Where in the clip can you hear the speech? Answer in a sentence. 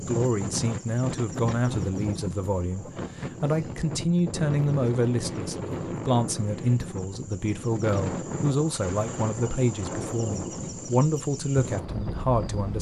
You can hear the speech from 0.0 to 12.7 s.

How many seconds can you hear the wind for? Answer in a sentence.
You can hear the wind for 13 seconds altogether.